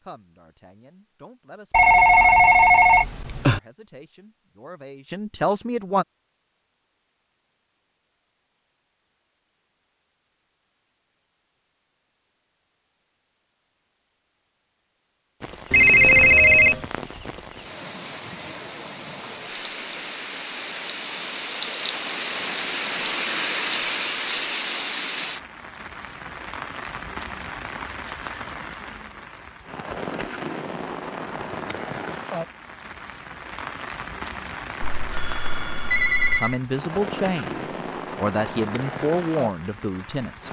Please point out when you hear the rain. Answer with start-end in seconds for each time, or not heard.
15.4-40.4.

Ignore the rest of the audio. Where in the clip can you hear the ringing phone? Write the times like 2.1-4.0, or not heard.
1.7-3.6, 15.7-16.9, 34.8-36.6.